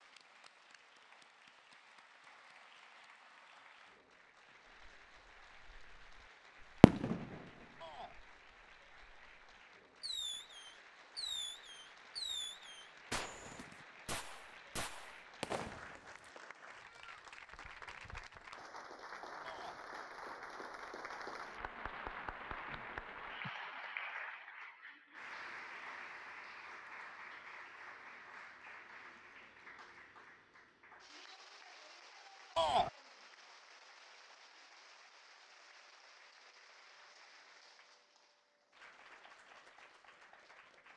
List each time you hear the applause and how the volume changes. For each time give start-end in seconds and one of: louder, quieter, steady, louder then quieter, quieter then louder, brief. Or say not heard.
0.0-40.9 louder then quieter.